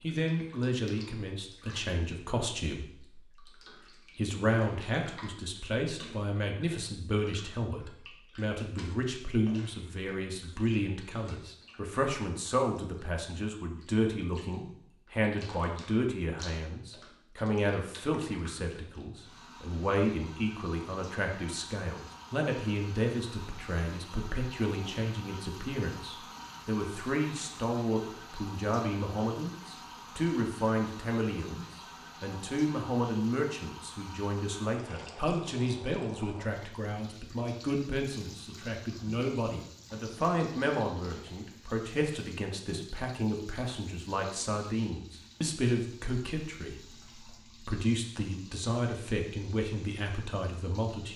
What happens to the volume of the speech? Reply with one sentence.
The volume of the speech stays about the same.